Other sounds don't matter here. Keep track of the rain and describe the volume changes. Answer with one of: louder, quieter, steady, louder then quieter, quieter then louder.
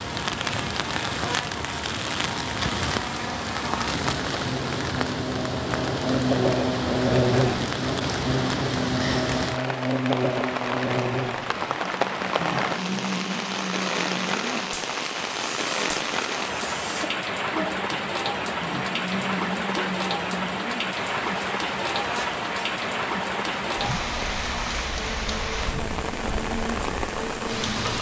steady.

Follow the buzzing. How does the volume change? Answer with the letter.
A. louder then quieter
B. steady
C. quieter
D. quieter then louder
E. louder
A.